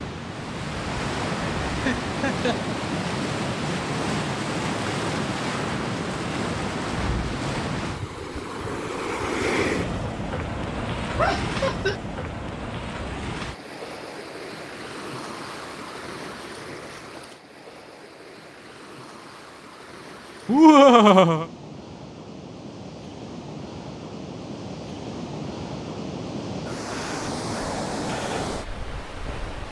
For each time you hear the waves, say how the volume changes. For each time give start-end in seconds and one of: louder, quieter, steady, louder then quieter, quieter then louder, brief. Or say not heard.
0.0-29.6 quieter then louder.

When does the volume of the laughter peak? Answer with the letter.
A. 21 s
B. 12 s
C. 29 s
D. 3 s
A.